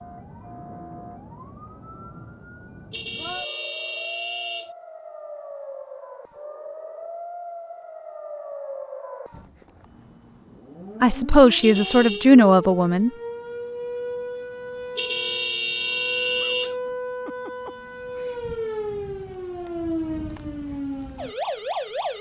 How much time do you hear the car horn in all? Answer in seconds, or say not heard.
4 s.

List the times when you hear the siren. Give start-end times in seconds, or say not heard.
0.0-22.1.